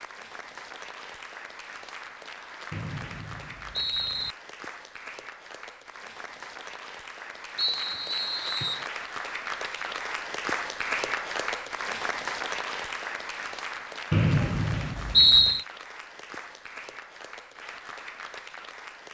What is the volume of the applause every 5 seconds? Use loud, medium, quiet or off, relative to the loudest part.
medium, medium, loud, medium.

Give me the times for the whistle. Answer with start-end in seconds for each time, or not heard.
2.7-4.3, 7.5-8.8, 14.1-15.7.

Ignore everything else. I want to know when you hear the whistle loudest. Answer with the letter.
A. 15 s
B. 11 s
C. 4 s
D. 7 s
A.